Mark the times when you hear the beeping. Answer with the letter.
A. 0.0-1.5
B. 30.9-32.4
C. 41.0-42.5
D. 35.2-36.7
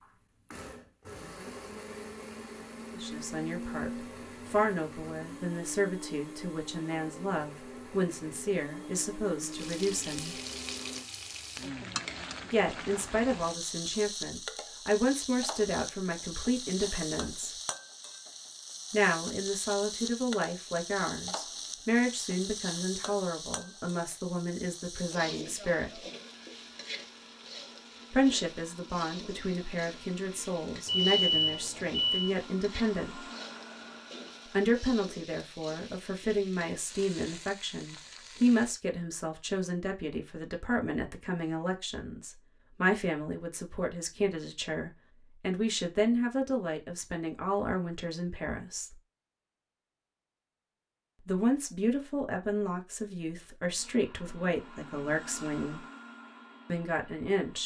B.